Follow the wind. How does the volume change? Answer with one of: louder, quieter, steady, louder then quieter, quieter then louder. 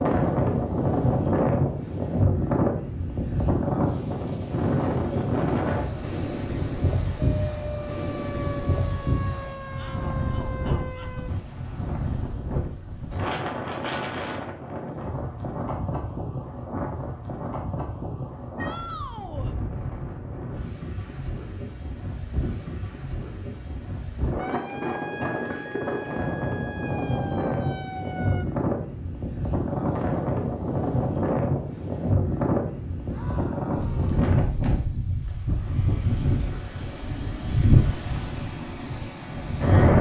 quieter then louder.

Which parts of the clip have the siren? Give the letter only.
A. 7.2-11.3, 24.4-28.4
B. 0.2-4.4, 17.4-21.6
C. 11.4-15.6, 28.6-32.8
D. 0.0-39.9
A.